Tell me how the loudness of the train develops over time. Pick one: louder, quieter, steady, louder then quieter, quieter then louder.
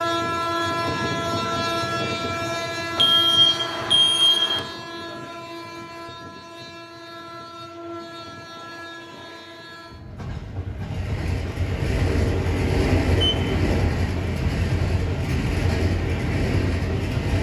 quieter then louder.